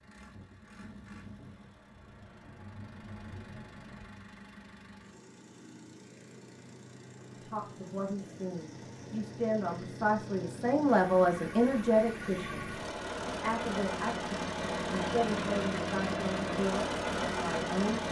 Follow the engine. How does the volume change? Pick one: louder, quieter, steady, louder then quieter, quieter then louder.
louder.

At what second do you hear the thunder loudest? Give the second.
3 s.